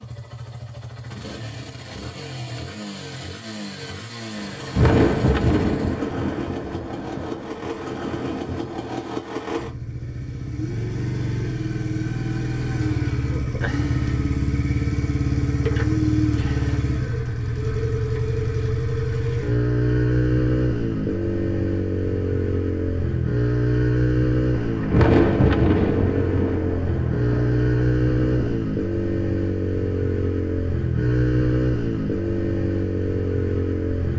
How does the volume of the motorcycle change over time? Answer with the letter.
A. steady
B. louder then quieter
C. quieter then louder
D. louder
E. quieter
D.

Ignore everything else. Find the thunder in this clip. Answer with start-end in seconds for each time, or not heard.
4.3-8.9, 24.6-28.6.